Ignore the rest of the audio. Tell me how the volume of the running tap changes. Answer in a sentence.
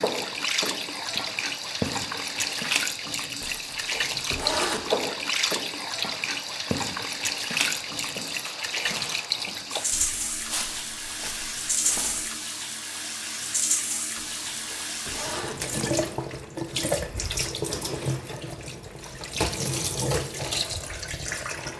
The volume of the running tap stays about the same.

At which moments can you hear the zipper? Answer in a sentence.
The zipper can be heard from 3.4 to 4.8 s and from 14.2 to 15.8 s.